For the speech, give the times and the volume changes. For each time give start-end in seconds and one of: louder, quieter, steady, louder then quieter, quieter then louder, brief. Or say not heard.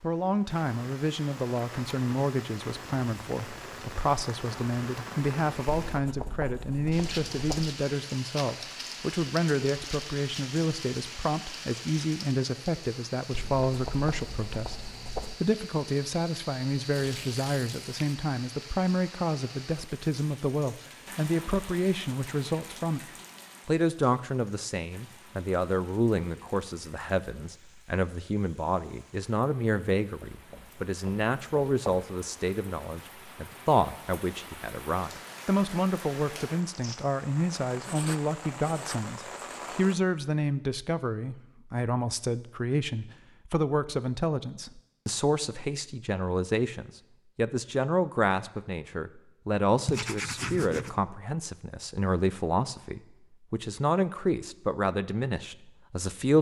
0.0-23.0 steady
23.6-56.3 steady.